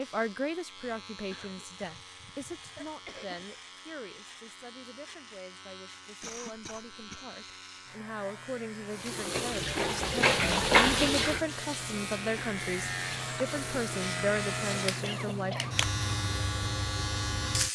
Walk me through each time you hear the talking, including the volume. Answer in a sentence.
You can hear the talking from 0.0 to 15.6 s, getting quieter then louder.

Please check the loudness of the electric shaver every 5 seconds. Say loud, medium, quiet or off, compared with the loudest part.
quiet, quiet, loud, loud.